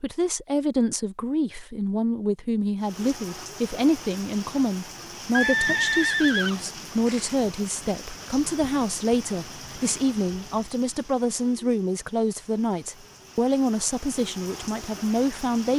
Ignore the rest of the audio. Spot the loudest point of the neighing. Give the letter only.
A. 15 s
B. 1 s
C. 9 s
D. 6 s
D.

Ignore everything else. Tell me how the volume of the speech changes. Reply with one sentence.
The loudness of the speech stays about the same.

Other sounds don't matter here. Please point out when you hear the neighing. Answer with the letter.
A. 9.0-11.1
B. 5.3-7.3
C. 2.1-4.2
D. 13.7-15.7
B.